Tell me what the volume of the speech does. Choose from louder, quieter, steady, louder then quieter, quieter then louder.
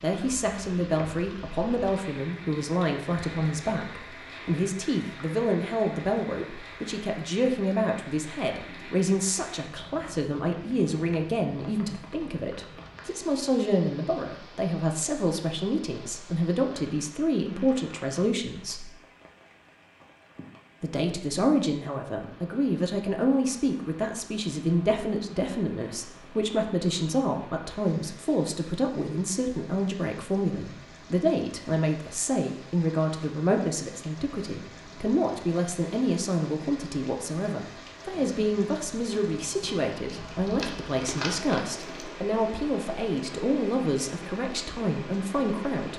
steady.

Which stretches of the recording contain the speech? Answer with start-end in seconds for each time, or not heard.
0.0-18.9, 20.8-45.9.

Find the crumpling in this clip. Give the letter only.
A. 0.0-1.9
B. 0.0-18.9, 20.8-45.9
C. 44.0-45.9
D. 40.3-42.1
D.